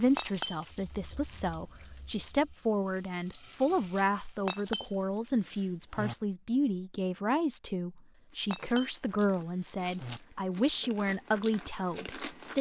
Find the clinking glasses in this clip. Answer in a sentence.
The clinking glasses can be heard from 0.1 to 0.7 s, from 4.5 to 5.0 s, from 5.5 to 6.2 s and from 8.5 to 10.2 s.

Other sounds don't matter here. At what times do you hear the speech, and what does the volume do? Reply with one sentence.
The speech can be heard from 0.0 to 12.5 s, at a steady volume.